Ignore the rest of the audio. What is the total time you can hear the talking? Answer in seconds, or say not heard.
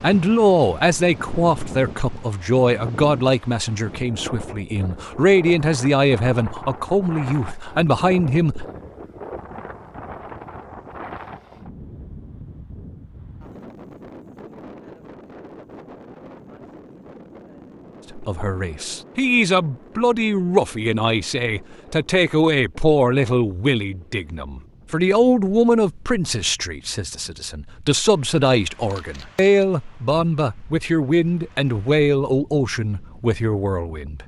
25 s.